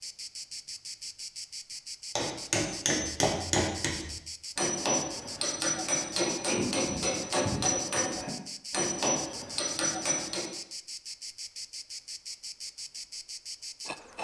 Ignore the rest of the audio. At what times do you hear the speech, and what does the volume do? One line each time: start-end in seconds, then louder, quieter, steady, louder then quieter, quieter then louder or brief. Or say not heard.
not heard.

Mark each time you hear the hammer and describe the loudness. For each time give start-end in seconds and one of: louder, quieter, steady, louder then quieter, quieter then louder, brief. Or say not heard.
2.1-10.5 steady.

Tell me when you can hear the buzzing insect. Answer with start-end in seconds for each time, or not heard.
0.0-14.1.